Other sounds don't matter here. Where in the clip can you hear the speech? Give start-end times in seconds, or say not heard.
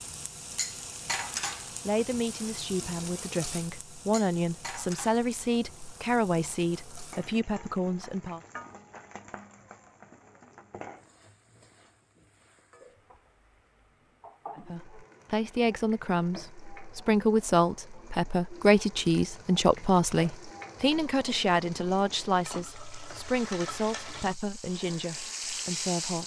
1.9-8.4, 14.6-26.2.